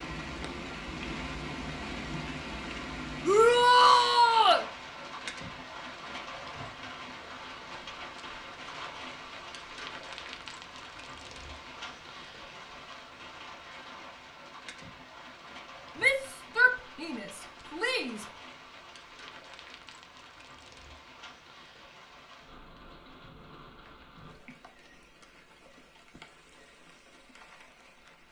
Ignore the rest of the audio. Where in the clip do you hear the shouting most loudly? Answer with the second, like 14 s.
4 s.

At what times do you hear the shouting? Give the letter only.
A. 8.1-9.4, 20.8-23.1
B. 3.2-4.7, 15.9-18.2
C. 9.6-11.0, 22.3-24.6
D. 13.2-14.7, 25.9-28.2
B.